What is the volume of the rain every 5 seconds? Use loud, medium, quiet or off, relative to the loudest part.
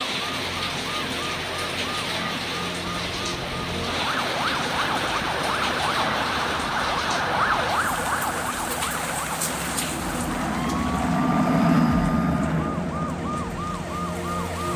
loud, loud, quiet.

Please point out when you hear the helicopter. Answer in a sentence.
The helicopter can be heard from 3.0 to 14.7 s.